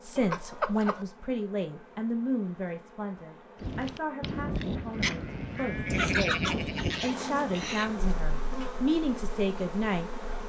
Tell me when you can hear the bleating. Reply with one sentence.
The bleating can be heard from 3.6 to 8.7 s.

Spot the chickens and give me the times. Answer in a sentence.
You can hear the chickens from 0.1 to 1.1 s and from 5.9 to 7.9 s.